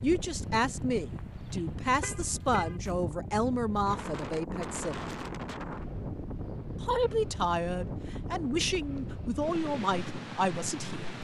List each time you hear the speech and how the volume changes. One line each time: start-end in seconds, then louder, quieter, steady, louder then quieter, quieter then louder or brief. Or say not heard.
0.0-5.0 steady
6.8-11.1 steady.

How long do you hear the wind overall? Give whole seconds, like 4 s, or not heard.
11 s.